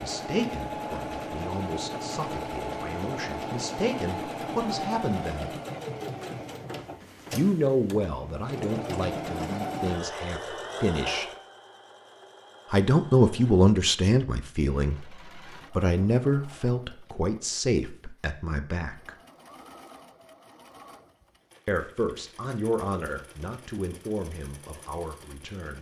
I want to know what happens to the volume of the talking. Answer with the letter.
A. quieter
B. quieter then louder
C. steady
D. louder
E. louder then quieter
E.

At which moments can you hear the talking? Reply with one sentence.
You can hear the talking from 0.0 to 5.5 s, from 7.3 to 11.2 s, from 12.7 to 19.1 s and from 21.6 to 25.7 s.